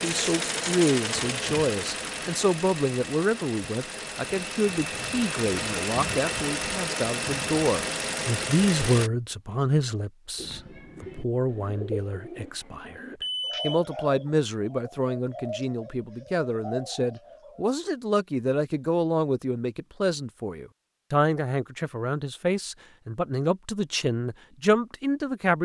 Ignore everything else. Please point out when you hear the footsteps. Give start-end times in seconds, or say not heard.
not heard.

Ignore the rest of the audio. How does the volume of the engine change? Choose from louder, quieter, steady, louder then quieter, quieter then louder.
quieter then louder.